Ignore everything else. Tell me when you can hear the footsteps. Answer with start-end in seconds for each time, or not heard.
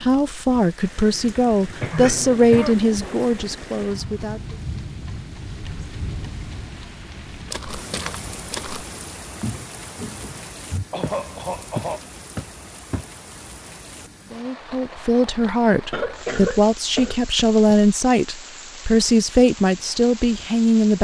7.3-13.1.